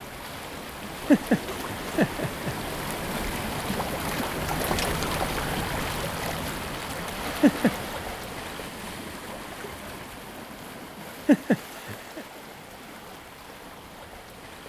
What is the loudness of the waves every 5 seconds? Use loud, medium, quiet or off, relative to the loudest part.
loud, loud, medium.